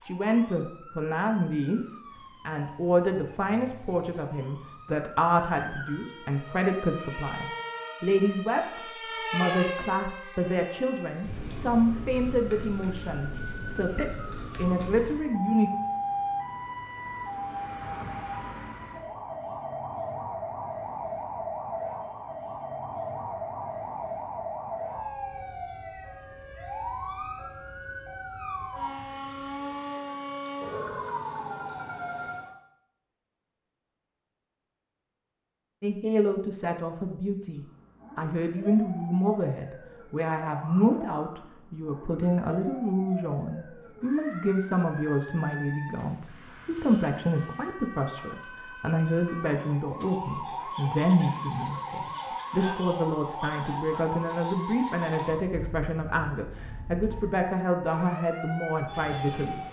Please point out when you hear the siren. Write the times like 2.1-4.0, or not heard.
0.0-32.5, 37.5-59.6.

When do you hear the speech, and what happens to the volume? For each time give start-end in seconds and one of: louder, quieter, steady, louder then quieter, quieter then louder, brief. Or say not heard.
0.1-15.7 steady
35.8-59.6 steady.